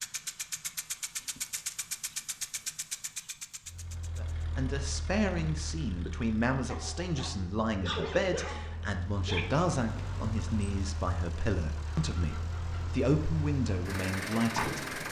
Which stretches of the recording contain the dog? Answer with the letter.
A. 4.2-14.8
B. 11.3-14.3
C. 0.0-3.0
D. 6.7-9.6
D.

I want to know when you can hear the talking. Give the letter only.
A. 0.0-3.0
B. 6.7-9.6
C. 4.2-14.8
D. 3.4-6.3
C.